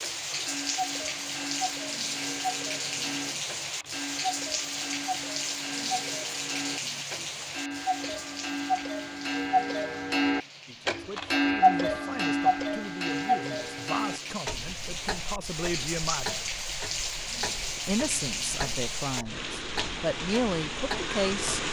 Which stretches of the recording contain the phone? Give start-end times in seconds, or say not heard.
not heard.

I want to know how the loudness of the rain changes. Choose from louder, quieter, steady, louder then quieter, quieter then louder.
quieter then louder.